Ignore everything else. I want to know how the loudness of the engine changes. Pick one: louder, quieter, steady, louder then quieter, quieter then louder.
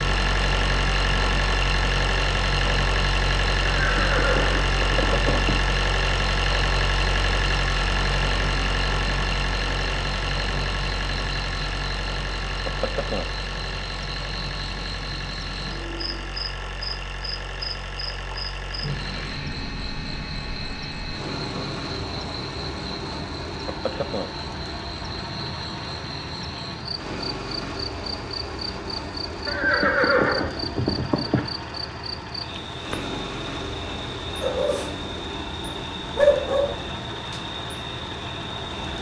quieter.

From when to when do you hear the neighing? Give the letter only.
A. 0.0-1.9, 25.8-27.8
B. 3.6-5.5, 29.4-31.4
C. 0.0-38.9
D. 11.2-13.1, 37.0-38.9
B.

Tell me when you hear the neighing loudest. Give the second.
30 s.